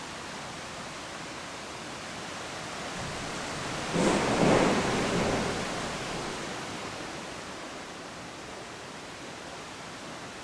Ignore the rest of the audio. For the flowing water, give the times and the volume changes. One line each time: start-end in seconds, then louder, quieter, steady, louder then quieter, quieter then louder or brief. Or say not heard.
0.0-10.3 louder then quieter.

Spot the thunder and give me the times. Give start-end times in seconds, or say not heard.
3.0-6.5.